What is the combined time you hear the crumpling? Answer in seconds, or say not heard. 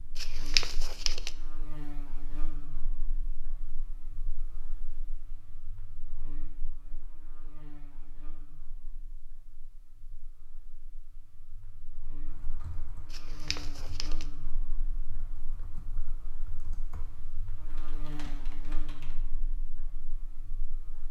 2 s.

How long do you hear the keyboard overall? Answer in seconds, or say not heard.
7 s.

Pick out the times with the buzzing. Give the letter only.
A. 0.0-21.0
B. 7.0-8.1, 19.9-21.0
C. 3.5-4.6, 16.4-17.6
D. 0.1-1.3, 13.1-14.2
A.